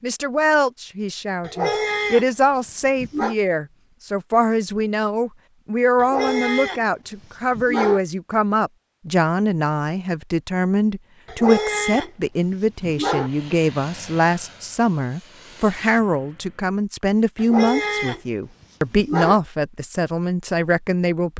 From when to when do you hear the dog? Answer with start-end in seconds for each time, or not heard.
1.4-3.4, 6.0-8.0, 11.2-13.3, 17.4-19.4.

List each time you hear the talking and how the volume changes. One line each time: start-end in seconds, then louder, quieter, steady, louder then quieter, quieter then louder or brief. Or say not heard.
0.0-21.3 steady.